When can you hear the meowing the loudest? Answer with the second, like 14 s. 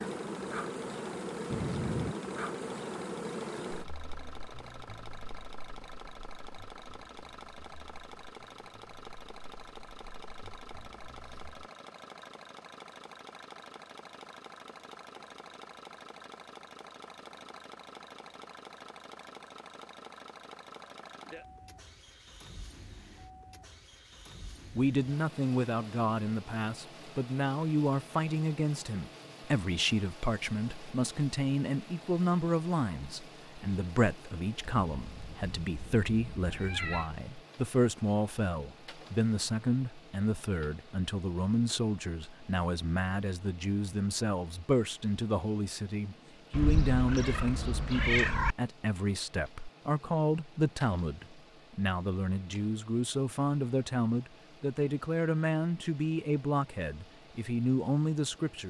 48 s.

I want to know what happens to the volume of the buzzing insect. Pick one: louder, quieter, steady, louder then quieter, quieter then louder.
quieter.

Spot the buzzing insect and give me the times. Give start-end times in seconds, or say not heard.
0.0-11.7.